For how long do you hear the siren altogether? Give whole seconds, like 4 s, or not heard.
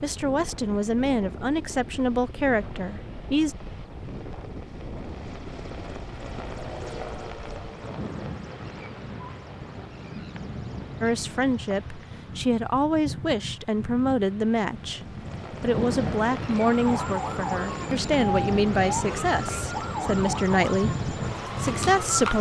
6 s.